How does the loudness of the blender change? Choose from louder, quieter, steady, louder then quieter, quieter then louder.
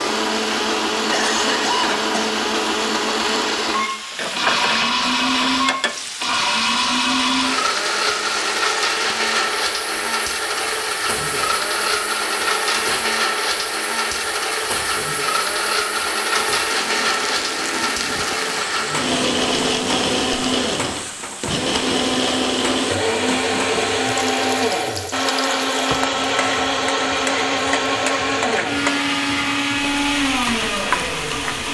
steady.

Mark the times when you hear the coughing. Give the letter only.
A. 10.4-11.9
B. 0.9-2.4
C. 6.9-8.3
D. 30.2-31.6
B.